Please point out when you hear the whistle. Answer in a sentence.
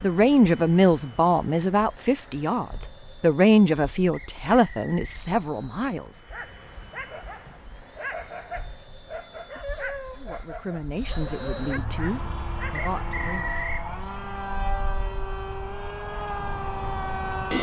You can hear the whistle from 4.1 to 5.2 s and from 12.7 to 13.8 s.